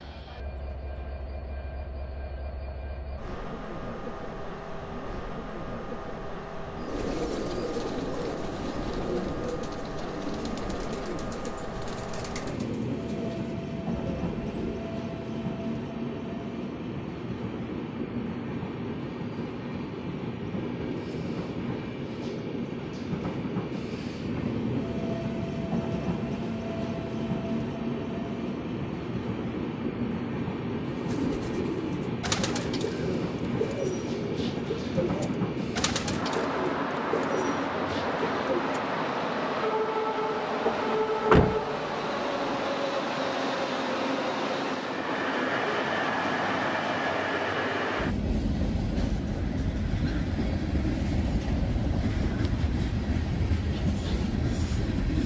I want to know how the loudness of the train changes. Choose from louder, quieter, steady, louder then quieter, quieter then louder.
louder.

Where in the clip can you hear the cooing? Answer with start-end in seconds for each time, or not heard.
6.8-14.9, 30.8-38.9.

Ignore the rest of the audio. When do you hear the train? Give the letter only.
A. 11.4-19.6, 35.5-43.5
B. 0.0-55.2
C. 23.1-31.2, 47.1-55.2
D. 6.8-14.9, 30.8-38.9
B.